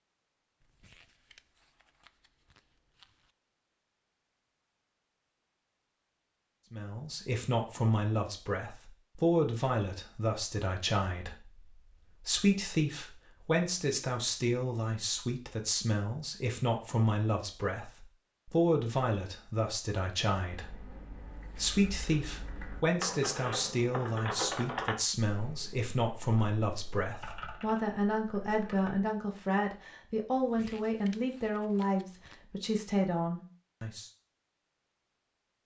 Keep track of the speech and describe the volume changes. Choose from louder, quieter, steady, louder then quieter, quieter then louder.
steady.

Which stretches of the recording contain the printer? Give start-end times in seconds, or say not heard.
not heard.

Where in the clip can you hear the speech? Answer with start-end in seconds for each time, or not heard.
6.7-34.1.